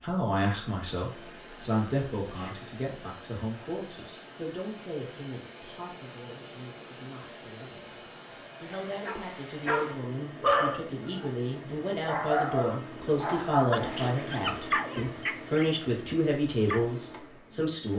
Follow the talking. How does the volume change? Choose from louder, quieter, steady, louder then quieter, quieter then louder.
quieter then louder.